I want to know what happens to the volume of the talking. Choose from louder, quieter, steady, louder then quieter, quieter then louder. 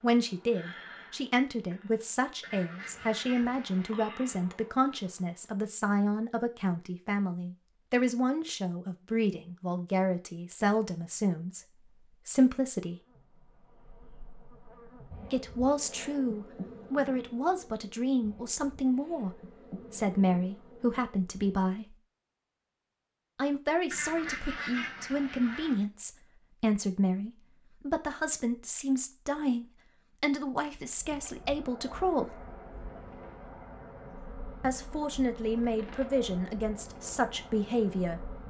steady.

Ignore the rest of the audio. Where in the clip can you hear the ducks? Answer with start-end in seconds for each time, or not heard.
2.4-4.0, 23.9-25.9.